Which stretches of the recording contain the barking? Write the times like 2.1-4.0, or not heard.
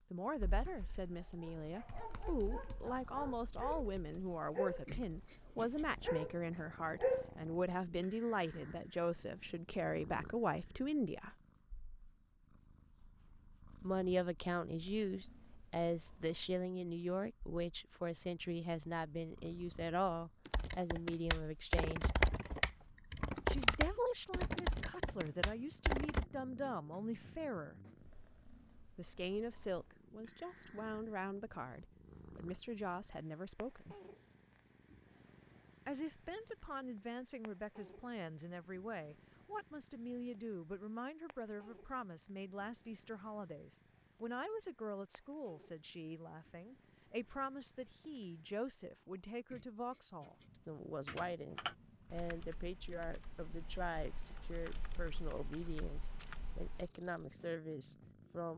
1.1-7.3.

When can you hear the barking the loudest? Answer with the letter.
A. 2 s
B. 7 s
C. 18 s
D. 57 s
B.